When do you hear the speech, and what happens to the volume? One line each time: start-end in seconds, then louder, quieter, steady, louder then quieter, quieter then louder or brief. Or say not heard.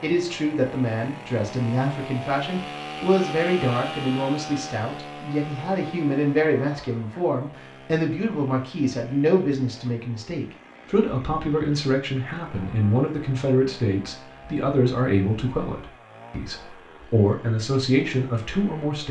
0.0-19.0 steady.